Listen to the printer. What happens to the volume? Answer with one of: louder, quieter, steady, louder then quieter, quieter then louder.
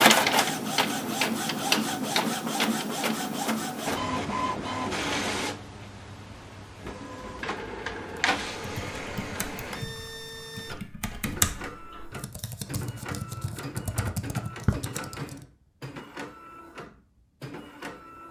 quieter.